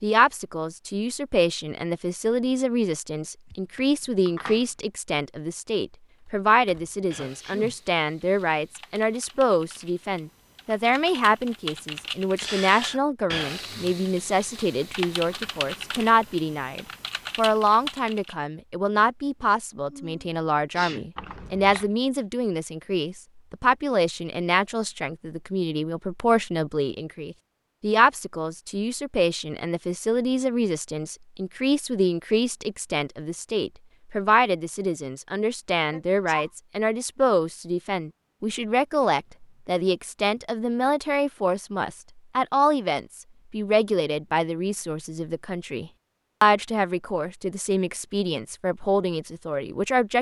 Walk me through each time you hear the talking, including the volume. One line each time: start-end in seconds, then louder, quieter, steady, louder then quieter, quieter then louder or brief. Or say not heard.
0.0-50.1 steady.